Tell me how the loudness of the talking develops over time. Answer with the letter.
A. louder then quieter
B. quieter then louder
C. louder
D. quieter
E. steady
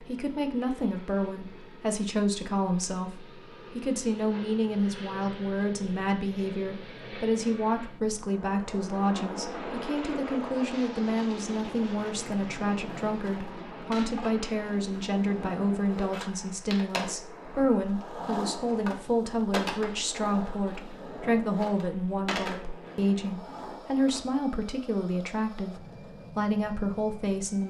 E.